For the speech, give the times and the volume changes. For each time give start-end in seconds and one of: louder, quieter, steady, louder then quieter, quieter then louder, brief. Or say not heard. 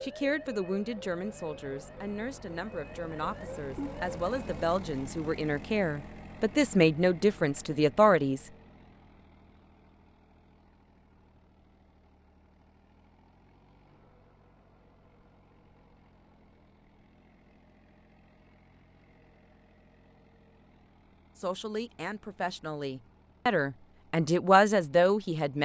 0.0-8.5 louder
21.4-25.5 louder.